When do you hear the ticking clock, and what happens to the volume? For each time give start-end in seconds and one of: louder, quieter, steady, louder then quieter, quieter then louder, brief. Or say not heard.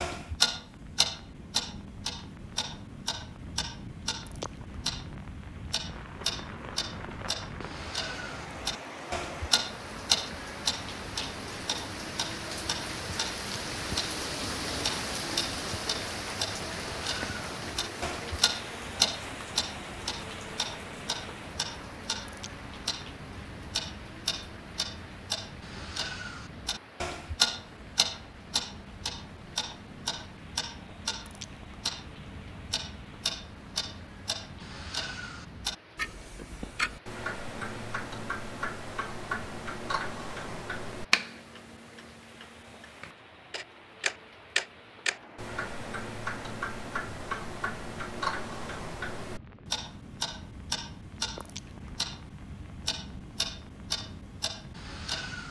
0.0-55.4 steady.